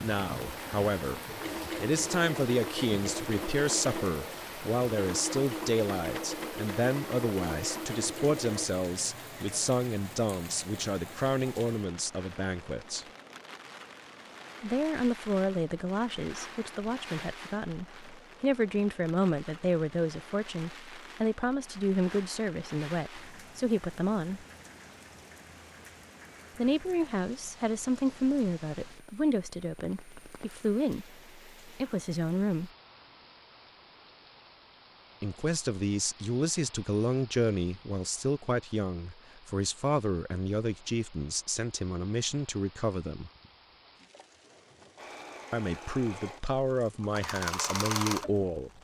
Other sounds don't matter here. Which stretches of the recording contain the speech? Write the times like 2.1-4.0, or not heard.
0.0-13.1, 14.6-24.4, 26.6-32.7, 35.2-43.3, 45.5-48.7.